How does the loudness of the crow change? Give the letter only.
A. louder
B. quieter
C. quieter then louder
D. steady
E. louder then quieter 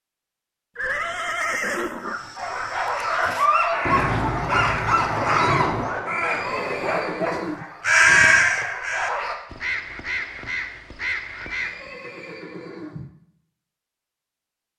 E.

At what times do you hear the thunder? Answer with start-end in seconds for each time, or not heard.
3.9-5.8.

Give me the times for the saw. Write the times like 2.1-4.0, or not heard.
not heard.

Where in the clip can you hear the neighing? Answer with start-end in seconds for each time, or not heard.
0.8-2.2, 6.0-7.7, 11.4-13.2.